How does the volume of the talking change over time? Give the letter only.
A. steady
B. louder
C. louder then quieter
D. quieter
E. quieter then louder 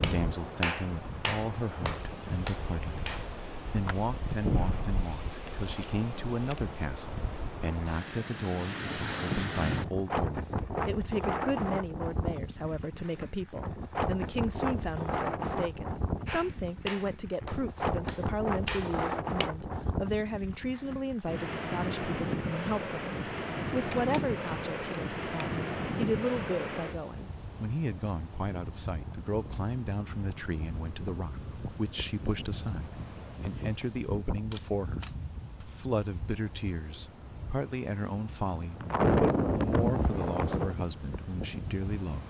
A.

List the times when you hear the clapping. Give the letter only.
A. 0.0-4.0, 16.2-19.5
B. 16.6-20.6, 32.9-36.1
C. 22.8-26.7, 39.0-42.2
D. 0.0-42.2
A.